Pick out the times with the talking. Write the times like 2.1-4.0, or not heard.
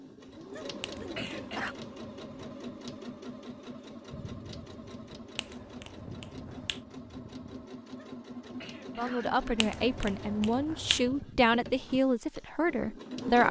8.9-13.4.